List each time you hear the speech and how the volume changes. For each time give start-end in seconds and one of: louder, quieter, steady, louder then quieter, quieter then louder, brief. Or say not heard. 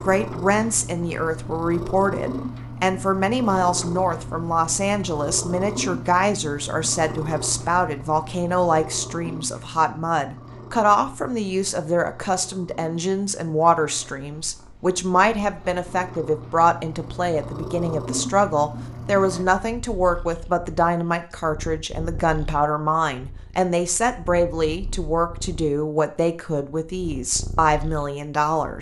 0.0-28.7 steady.